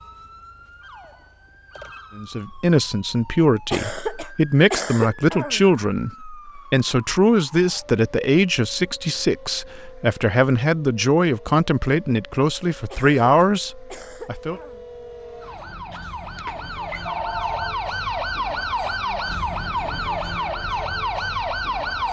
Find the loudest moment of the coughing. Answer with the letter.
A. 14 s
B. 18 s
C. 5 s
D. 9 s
C.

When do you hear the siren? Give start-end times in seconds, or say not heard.
0.0-22.0.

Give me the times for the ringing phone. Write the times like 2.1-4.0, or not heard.
15.9-17.8.